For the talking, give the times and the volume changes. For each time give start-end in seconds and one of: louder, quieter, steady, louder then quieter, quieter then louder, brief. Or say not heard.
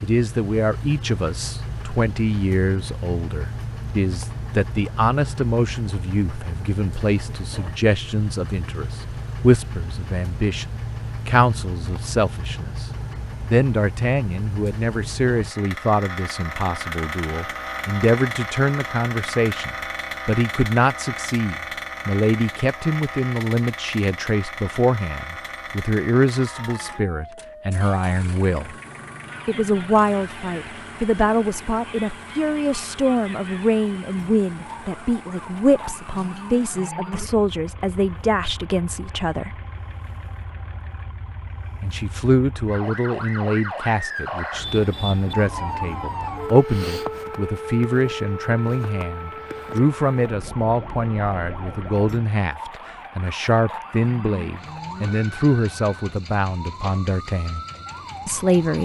0.0-28.8 steady
29.4-39.5 steady
41.8-57.6 steady
58.2-58.8 brief.